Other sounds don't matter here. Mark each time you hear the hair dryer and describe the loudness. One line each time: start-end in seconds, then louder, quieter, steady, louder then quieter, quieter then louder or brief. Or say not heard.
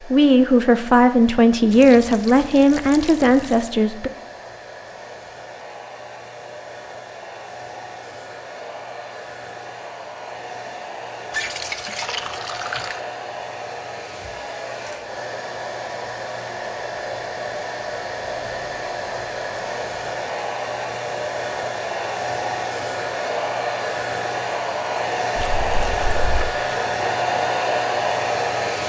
0.0-28.8 louder.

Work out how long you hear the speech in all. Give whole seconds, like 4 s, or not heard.
4 s.